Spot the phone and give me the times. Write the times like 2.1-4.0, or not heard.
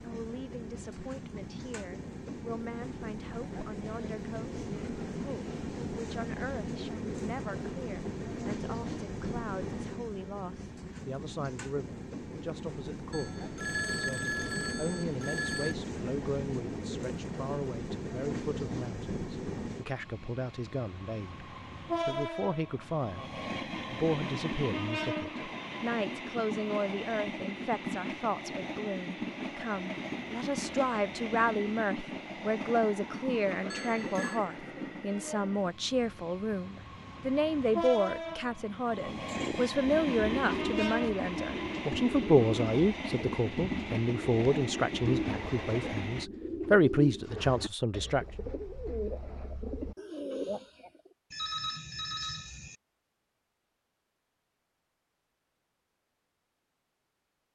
13.1-15.8, 33.7-34.4, 51.3-52.8.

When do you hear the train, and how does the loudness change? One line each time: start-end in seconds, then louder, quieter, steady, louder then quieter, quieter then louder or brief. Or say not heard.
0.0-46.3 steady.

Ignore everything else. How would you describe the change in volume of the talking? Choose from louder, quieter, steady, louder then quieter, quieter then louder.
louder.